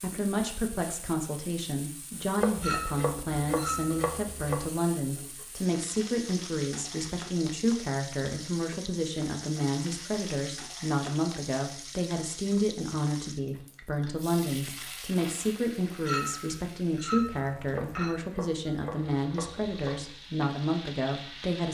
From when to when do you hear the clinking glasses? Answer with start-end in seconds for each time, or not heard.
2.6-4.0, 16.1-18.1.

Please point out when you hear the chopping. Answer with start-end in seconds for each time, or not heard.
2.4-4.7, 17.8-20.1.